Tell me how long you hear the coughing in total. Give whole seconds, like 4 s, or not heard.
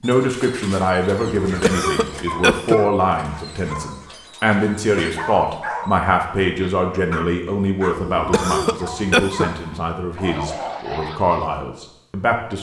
3 s.